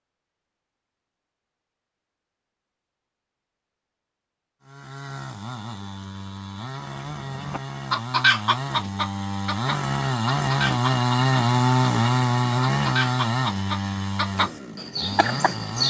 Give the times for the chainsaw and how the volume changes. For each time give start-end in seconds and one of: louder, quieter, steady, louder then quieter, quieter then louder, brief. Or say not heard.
4.7-15.8 louder then quieter.